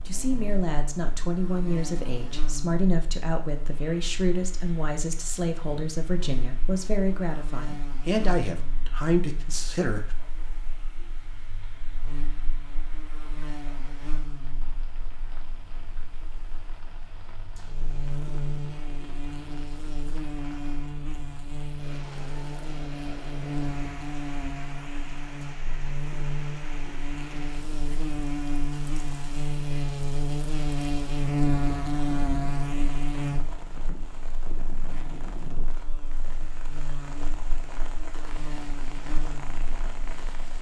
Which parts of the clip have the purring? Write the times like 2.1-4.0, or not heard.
38.2-40.5.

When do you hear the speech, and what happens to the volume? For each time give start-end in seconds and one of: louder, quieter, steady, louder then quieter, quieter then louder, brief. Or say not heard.
0.1-10.2 steady.